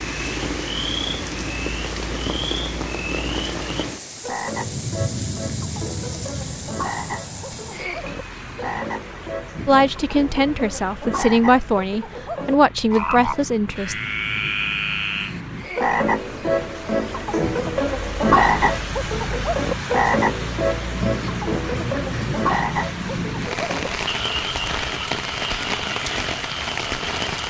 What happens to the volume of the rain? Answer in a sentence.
The loudness of the rain goes down, then up.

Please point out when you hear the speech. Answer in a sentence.
You can hear the speech from 9.7 to 13.9 s.